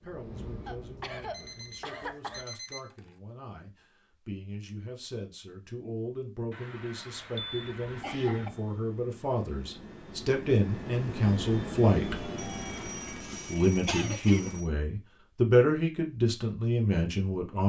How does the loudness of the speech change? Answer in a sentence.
The loudness of the speech goes up.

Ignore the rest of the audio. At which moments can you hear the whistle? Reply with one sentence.
The whistle can't be heard in this clip.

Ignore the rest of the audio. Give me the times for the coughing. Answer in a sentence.
You can hear the coughing from 0.6 to 2.5 s, from 6.5 to 8.5 s and from 13.1 to 14.6 s.